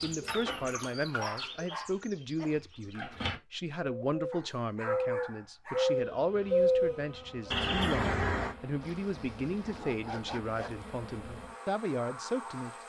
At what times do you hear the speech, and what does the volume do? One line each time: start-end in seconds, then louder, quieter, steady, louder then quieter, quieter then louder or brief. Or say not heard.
0.0-12.7 steady.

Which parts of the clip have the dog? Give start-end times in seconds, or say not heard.
1.1-2.5, 4.3-6.0, 8.8-10.9.